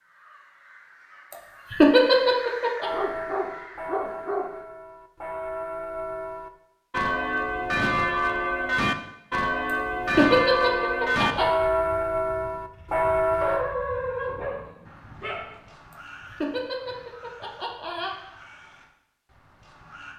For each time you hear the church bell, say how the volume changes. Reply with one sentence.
You can hear the church bell from 2.8 to 13.7 s, getting louder.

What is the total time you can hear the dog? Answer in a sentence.
The dog can be heard for 4 seconds in total.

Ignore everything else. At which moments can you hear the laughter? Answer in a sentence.
You can hear the laughter from 1.3 to 2.9 s, from 10.1 to 11.4 s and from 15.9 to 18.1 s.